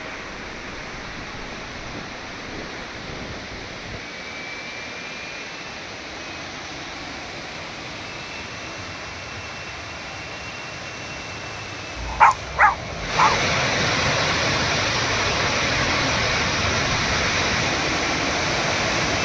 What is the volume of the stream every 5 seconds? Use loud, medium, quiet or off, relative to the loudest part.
quiet, quiet, loud, loud.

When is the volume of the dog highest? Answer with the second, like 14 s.
12 s.